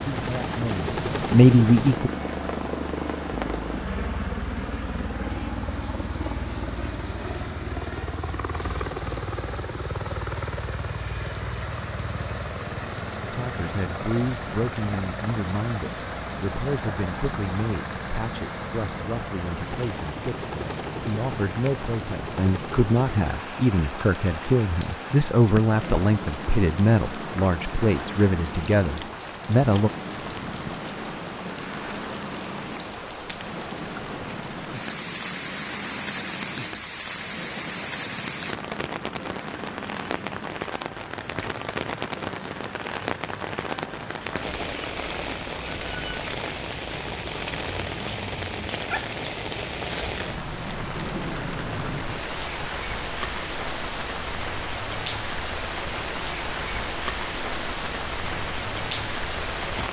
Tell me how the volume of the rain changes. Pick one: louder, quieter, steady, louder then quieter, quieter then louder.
louder.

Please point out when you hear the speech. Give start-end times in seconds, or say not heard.
0.1-2.1, 13.3-29.9.